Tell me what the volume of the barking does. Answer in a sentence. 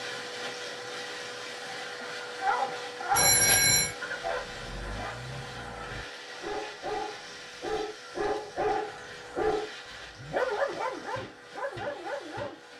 The volume of the barking goes down, then up.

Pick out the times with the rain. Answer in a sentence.
The rain can't be heard in this clip.